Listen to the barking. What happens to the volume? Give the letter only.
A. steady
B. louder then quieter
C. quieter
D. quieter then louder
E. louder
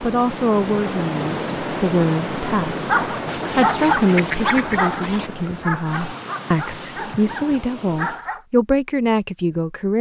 C.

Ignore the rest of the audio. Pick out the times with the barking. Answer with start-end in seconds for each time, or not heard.
2.9-8.4.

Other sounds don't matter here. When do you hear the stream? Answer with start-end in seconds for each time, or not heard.
0.0-8.2.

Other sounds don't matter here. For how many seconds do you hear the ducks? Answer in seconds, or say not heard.
2 s.